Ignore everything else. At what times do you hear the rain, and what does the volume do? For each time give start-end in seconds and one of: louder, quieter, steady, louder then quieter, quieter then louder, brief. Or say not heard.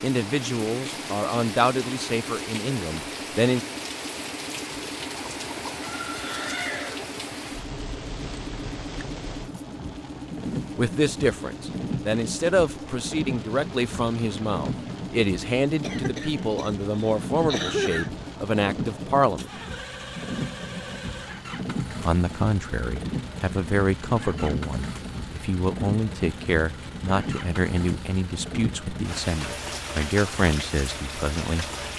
0.0-31.9 steady.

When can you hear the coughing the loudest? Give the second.
18 s.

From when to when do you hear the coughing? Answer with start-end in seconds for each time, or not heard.
15.8-18.2.